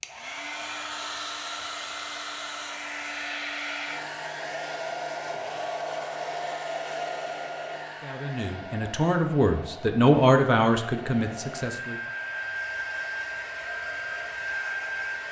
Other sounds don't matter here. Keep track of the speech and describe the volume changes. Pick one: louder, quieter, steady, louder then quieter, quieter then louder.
louder then quieter.